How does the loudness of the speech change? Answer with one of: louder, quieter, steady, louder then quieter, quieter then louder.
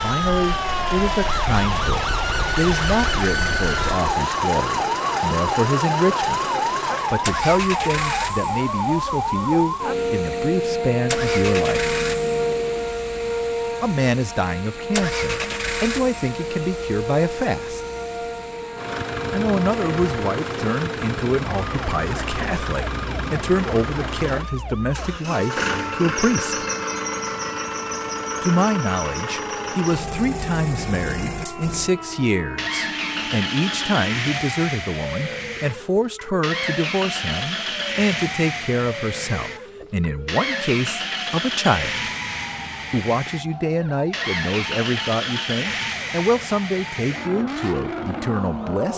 steady.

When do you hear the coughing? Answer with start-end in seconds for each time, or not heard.
not heard.